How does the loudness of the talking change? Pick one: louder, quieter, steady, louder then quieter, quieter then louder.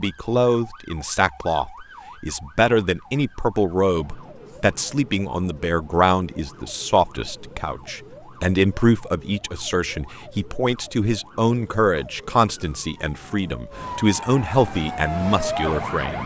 steady.